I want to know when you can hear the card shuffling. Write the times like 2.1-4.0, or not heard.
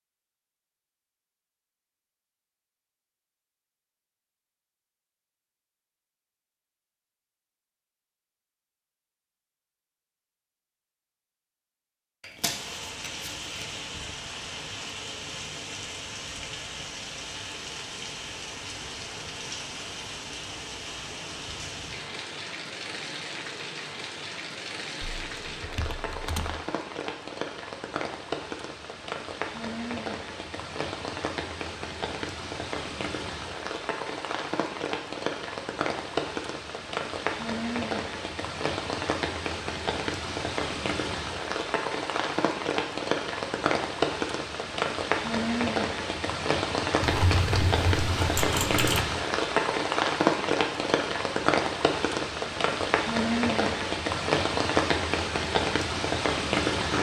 12.2-13.8.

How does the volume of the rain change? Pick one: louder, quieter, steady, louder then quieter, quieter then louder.
louder.